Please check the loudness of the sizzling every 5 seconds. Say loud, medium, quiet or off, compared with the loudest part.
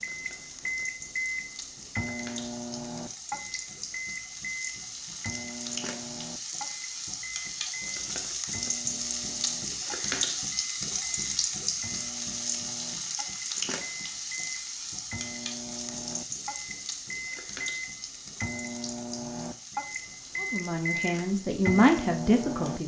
medium, loud, loud, medium, quiet.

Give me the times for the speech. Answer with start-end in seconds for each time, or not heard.
20.4-22.8.